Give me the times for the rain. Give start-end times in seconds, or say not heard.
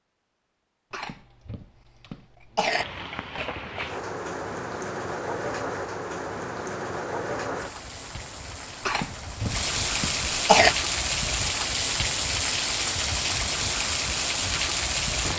2.8-15.3.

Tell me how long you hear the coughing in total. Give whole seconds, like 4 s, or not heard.
4 s.